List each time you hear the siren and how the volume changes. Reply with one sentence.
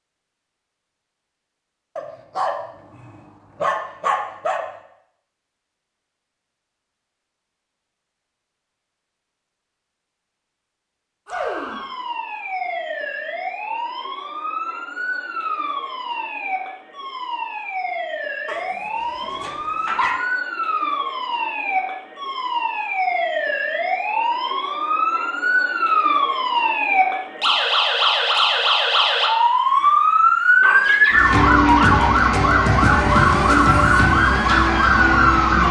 The siren can be heard from 11.2 to 35.6 s, getting louder.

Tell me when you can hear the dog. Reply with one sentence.
The dog can be heard from 1.9 to 4.7 s, from 18.4 to 20.2 s and from 30.6 to 32.2 s.